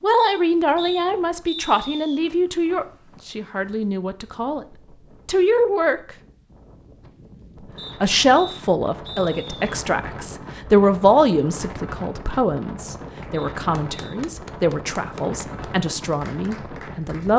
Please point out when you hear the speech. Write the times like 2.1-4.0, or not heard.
0.0-4.7, 5.2-6.0, 8.0-17.3.